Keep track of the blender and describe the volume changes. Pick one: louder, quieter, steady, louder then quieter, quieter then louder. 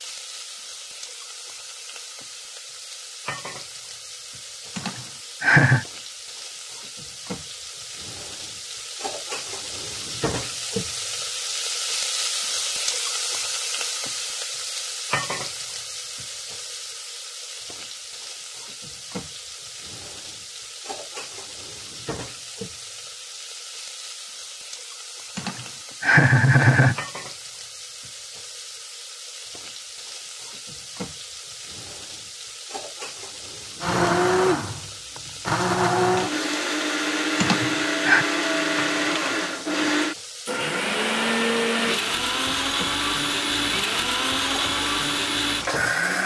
steady.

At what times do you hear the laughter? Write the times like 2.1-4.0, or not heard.
4.8-5.8, 25.4-26.9, 37.4-38.2.